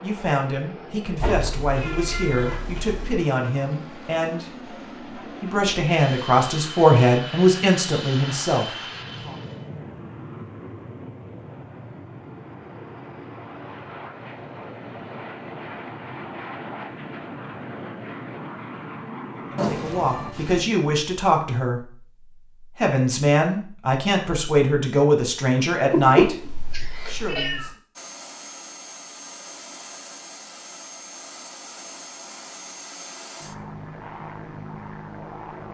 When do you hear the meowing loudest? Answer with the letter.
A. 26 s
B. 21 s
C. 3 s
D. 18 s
A.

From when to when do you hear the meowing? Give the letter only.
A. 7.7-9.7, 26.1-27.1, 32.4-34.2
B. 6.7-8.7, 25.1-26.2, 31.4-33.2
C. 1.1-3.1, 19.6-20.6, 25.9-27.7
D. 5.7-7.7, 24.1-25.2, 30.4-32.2
C.